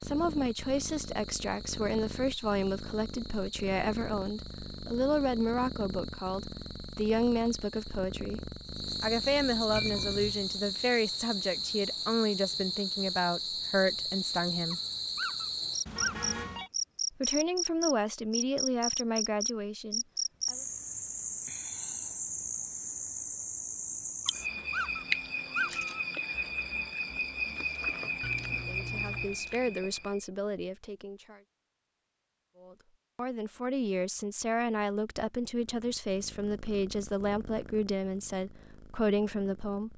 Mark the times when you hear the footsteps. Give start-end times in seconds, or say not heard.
not heard.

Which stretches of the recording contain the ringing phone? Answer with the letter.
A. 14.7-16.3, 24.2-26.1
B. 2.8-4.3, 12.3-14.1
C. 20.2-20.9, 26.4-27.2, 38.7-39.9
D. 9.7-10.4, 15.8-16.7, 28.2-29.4
D.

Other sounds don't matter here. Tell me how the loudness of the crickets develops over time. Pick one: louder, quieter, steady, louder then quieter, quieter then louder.
louder.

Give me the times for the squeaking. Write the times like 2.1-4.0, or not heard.
14.7-16.3, 24.2-26.1.